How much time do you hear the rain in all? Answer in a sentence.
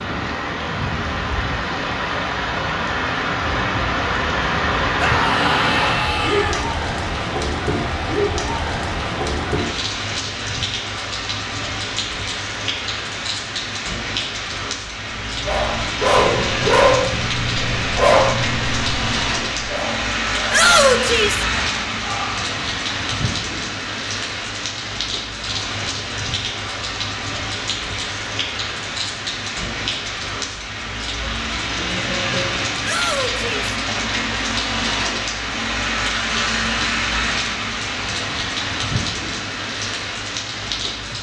The rain can be heard for 41 seconds in total.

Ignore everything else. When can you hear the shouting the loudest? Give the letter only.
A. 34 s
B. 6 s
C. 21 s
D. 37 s
C.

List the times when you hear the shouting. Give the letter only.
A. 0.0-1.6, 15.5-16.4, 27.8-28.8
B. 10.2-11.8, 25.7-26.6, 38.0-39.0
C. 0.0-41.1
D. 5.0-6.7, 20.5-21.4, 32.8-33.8
D.